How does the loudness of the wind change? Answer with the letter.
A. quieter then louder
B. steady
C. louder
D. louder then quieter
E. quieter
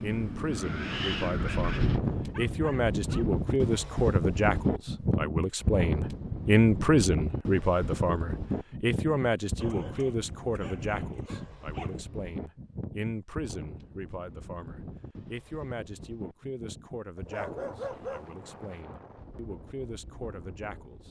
E.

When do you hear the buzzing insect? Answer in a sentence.
The buzzing insect can't be heard in this clip.